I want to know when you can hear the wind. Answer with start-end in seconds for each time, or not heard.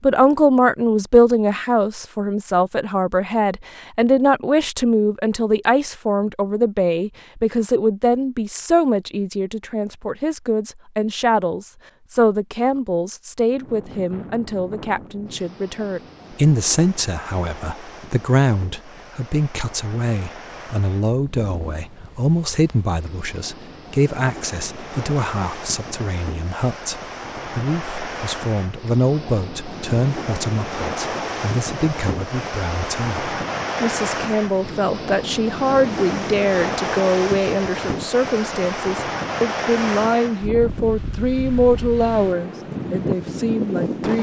13.5-44.1.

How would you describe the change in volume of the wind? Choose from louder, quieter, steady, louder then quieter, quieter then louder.
louder.